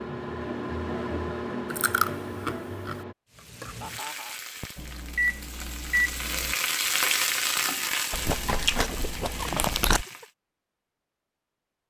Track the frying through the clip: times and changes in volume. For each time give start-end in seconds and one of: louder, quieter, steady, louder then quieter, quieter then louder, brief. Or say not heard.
3.3-10.3 louder then quieter.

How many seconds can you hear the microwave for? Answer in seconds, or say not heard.
5 s.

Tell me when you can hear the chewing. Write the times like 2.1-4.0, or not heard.
1.7-3.0, 8.1-10.1.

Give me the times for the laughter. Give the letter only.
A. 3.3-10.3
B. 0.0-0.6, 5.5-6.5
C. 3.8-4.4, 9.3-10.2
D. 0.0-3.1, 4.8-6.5
C.